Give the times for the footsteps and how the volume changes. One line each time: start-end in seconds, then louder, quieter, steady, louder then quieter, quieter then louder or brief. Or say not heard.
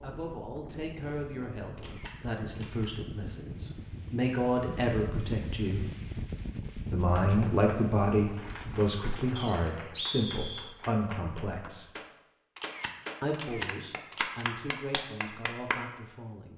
not heard.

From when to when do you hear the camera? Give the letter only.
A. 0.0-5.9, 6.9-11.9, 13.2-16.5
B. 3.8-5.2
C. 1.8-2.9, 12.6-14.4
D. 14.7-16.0
C.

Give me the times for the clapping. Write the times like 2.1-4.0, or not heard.
7.2-15.8.